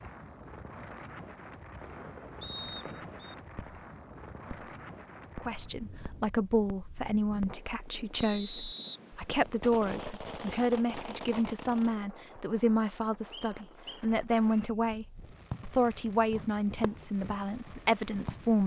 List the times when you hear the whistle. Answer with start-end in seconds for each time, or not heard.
2.4-3.4, 8.2-9.7, 13.3-14.7.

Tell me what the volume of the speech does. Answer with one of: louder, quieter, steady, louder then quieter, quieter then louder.
steady.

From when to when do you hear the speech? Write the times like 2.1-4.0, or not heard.
5.4-18.6.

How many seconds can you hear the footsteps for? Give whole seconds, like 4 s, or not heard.
not heard.